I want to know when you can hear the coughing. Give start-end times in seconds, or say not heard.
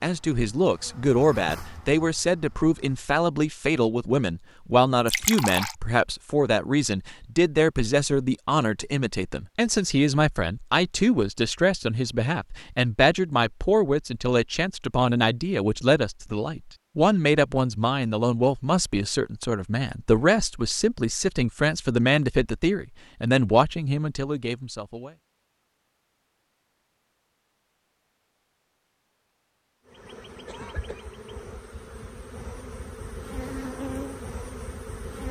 30.4-31.1.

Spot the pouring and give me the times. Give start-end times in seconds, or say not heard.
5.0-5.8.